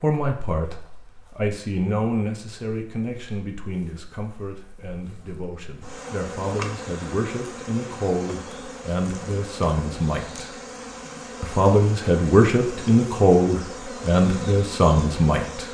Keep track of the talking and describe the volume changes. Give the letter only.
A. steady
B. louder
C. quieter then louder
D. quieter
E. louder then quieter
C.